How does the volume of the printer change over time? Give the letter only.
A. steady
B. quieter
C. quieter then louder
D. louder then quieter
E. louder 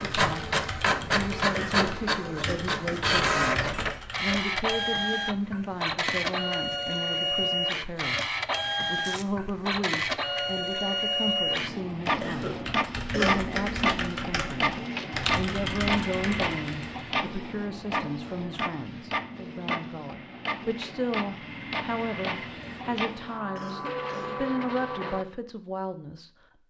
B.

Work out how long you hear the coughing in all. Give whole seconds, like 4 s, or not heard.
4 s.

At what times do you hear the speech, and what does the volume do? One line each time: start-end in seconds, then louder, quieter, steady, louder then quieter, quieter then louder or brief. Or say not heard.
0.0-0.5 brief
1.1-26.6 steady.